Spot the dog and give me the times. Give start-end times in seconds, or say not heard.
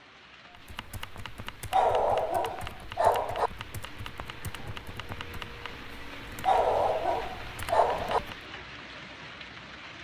1.7-3.5, 6.5-8.2.